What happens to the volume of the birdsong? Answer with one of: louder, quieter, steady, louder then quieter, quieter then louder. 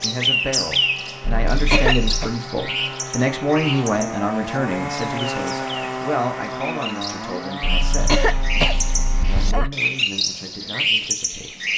quieter then louder.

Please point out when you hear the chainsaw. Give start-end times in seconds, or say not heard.
0.0-9.6.